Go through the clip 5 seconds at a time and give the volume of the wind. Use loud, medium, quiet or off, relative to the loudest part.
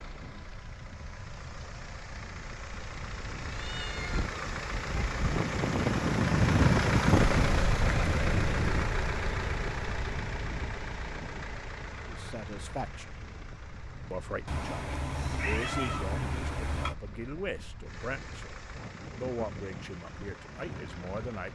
quiet, loud, quiet, quiet, quiet.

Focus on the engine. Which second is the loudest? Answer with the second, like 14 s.
7 s.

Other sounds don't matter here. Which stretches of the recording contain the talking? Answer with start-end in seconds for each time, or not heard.
12.1-13.2, 14.1-21.5.